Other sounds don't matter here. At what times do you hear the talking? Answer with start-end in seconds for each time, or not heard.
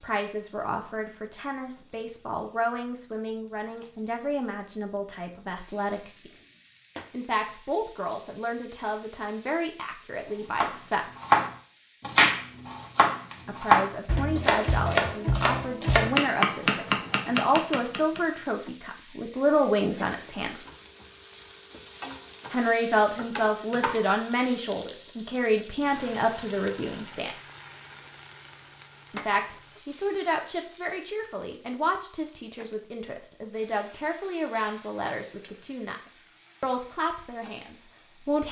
0.0-6.3, 7.1-11.1, 13.4-20.6, 22.5-27.4, 29.1-36.0, 36.6-38.4.